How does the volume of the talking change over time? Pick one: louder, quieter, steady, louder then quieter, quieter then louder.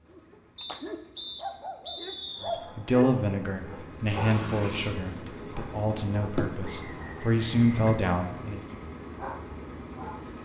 quieter then louder.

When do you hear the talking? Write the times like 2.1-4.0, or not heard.
2.4-8.7.